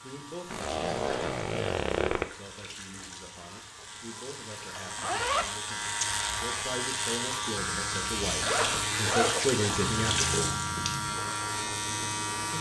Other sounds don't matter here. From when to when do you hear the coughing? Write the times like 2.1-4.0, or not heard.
not heard.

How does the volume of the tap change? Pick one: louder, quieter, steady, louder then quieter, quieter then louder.
louder.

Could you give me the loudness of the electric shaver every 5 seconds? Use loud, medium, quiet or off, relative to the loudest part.
quiet, loud, loud.